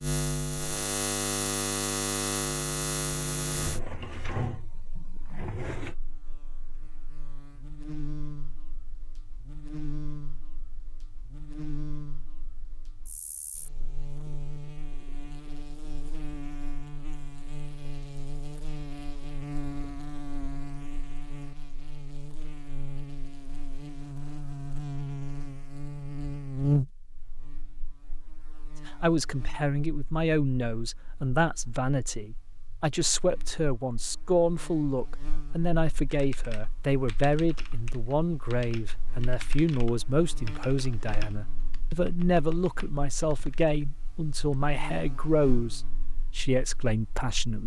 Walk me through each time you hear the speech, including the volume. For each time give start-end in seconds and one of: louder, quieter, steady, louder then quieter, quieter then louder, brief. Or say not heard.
28.9-47.6 steady.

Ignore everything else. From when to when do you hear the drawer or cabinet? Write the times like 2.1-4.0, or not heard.
3.5-6.0.